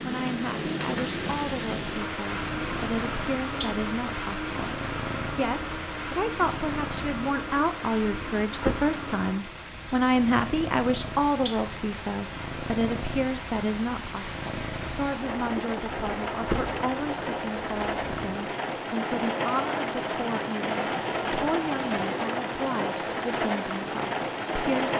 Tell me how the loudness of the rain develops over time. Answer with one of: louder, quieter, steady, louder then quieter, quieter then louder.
quieter then louder.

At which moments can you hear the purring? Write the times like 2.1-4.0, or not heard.
2.2-18.4.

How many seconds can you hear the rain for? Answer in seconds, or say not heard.
25 s.